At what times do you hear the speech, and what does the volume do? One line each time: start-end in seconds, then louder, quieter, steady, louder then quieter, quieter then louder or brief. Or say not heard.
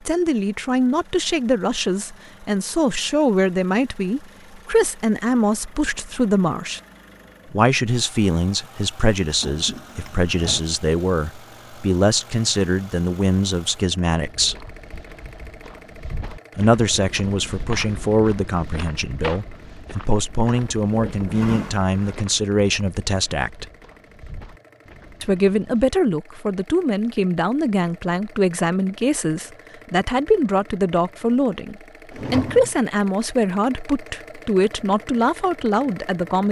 0.1-6.8 steady
7.5-14.7 steady
16.6-23.6 steady
25.2-36.4 steady.